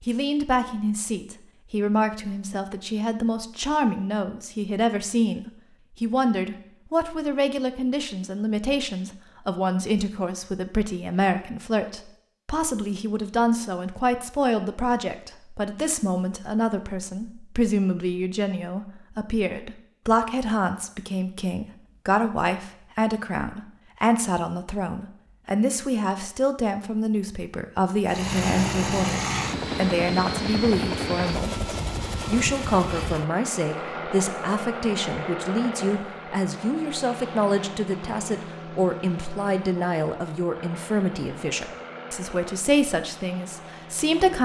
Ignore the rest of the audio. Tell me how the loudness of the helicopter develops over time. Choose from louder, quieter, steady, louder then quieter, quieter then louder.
quieter.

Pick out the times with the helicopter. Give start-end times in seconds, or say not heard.
28.1-44.3.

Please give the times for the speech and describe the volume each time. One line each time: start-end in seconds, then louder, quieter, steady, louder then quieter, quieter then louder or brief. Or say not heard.
0.0-44.3 steady.